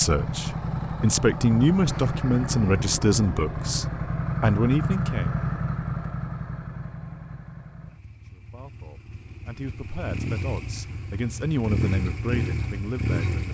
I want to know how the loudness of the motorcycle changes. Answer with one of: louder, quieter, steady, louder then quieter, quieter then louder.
quieter then louder.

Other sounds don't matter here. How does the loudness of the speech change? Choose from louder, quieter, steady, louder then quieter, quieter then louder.
quieter.